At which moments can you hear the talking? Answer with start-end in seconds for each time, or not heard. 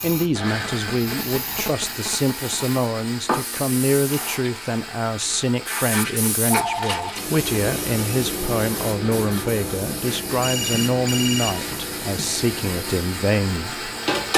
0.0-13.9.